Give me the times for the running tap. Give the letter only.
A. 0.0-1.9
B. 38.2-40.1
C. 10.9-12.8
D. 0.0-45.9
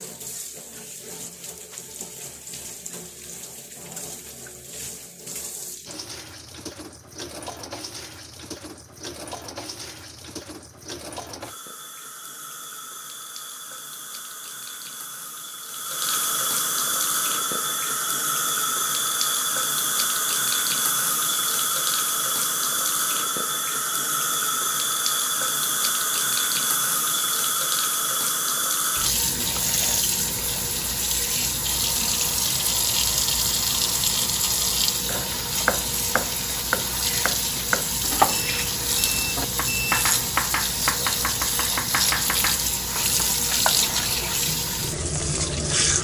D.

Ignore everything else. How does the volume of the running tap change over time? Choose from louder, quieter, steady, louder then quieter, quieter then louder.
louder.